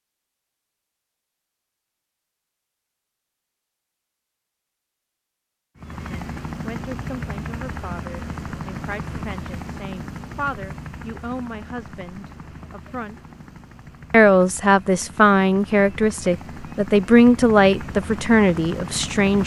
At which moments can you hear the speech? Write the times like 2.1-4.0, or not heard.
6.0-13.2, 14.1-19.4.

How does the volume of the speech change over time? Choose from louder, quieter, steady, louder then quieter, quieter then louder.
louder.